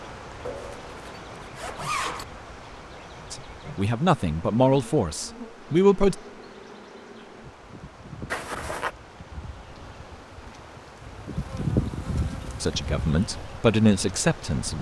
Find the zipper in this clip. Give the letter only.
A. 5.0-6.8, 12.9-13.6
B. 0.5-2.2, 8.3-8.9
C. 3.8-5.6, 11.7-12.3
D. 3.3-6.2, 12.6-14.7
B.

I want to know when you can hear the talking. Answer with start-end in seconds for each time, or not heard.
3.3-6.2, 12.6-14.7.